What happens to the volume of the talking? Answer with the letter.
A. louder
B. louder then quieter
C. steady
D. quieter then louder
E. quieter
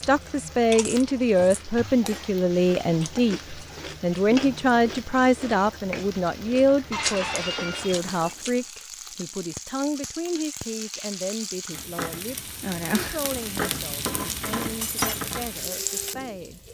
E.